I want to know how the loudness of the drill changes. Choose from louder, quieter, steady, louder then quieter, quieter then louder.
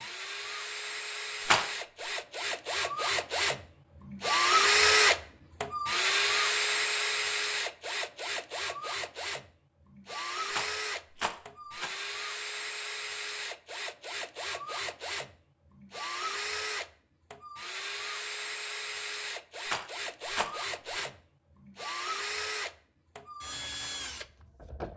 quieter.